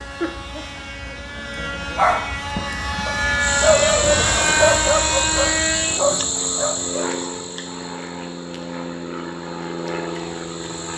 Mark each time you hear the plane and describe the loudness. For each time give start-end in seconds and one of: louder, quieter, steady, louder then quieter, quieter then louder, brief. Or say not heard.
0.0-10.9 louder then quieter.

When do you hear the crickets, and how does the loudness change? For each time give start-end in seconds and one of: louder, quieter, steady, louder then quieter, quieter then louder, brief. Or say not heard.
3.4-10.9 quieter.